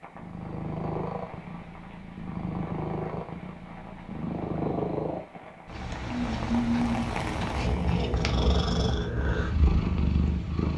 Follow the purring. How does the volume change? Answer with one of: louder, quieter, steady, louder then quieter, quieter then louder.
louder.